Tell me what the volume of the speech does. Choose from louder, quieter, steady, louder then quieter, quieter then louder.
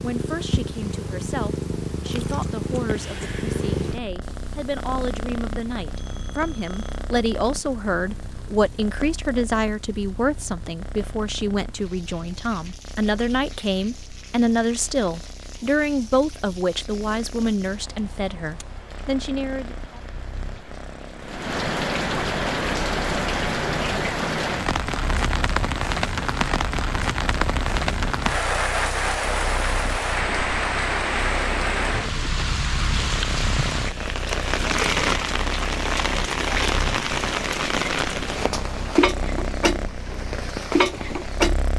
louder.